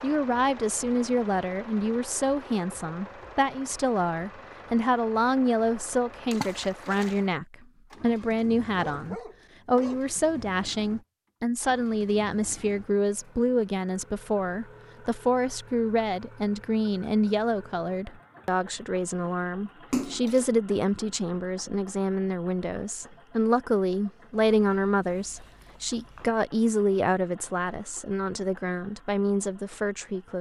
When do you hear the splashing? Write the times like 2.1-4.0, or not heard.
6.3-7.2, 19.9-20.4.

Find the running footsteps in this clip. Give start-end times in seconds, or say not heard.
not heard.